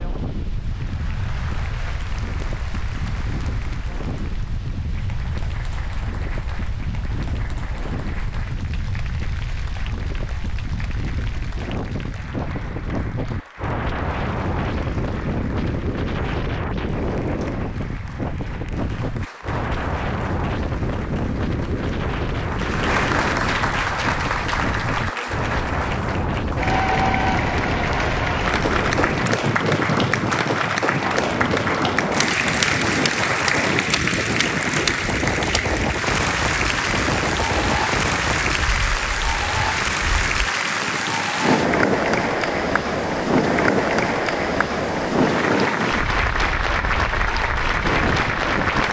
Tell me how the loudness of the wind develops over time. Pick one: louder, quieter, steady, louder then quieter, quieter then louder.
louder.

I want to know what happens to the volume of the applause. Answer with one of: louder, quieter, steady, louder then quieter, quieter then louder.
louder.